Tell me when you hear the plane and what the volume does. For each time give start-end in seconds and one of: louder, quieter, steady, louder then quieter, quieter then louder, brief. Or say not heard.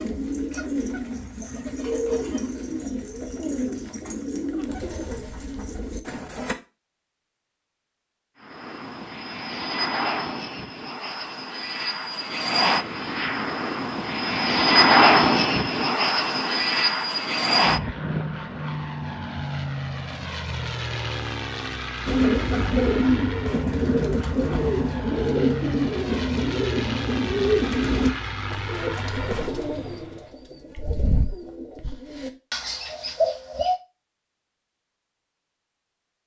8.4-30.3 louder then quieter.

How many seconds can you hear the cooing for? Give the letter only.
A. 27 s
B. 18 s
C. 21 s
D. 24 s
B.